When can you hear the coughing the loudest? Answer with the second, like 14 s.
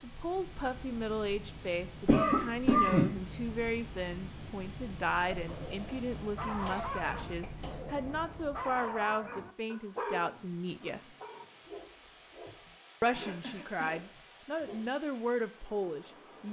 3 s.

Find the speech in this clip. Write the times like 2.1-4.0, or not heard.
0.0-11.2, 13.0-16.4.